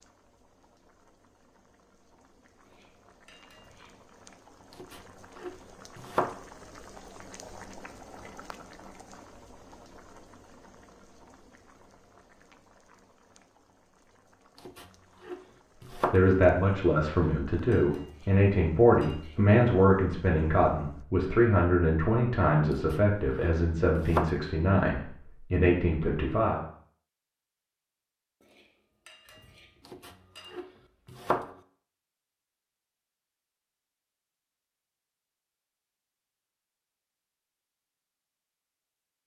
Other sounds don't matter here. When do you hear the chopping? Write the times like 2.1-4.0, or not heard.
4.8-6.4, 14.7-16.2, 22.8-24.4, 29.9-31.5.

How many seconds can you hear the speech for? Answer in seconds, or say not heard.
11 s.